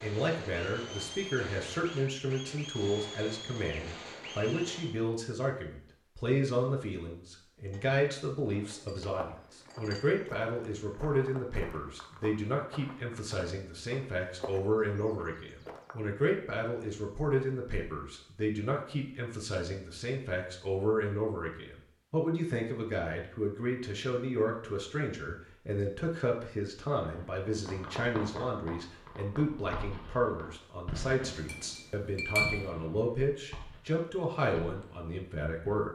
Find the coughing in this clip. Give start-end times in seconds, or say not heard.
not heard.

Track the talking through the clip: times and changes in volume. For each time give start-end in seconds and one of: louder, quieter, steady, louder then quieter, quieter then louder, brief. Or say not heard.
0.0-35.9 steady.